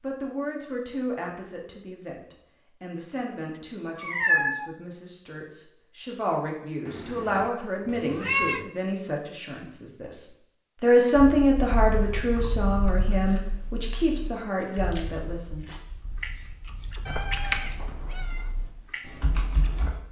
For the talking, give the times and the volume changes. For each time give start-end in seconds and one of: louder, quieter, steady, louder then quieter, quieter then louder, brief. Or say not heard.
0.0-15.8 louder then quieter.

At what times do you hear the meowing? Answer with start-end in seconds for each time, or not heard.
3.5-4.7, 6.8-8.7, 17.1-18.5.